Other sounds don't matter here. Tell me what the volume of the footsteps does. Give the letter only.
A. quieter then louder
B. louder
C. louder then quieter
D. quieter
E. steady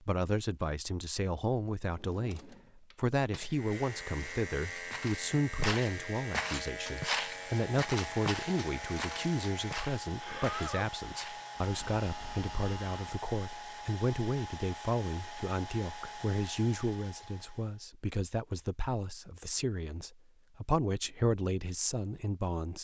D.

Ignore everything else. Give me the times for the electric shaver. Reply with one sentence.
The electric shaver can be heard from 3.5 to 13.0 s.